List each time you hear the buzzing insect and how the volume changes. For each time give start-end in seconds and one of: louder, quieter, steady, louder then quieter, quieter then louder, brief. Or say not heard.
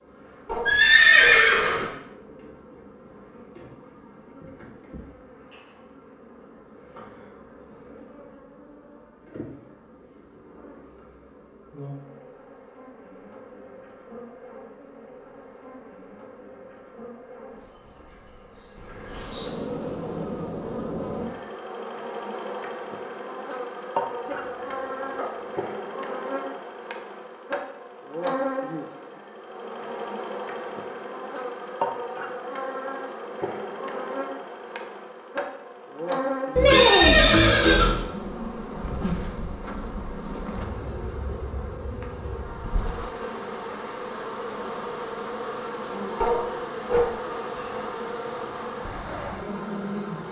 0.0-50.2 louder.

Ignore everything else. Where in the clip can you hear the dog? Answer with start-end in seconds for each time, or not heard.
0.5-1.4, 24.2-25.4, 46.2-47.8.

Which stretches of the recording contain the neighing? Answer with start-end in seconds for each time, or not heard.
0.7-1.9, 36.5-38.0.